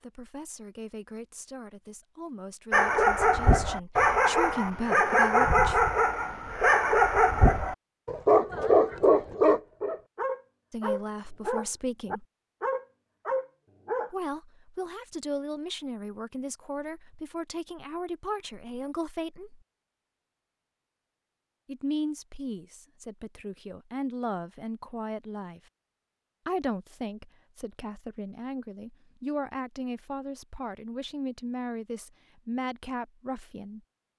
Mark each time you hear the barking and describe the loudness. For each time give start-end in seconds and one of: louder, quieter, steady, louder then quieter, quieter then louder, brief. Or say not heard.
2.7-14.1 quieter.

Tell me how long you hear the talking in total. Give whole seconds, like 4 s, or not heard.
24 s.